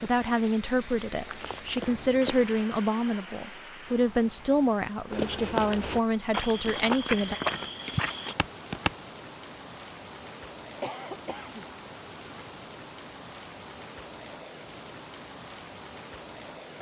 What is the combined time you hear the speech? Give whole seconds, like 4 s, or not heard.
7 s.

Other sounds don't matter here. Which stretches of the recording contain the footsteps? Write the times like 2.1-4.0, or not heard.
0.0-2.6, 5.1-8.9.